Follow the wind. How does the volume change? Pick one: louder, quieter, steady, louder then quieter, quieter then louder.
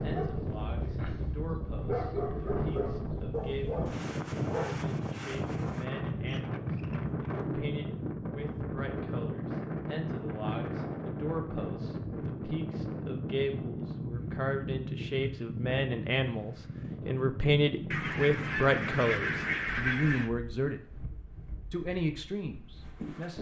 quieter.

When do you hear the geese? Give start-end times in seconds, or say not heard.
17.9-20.3.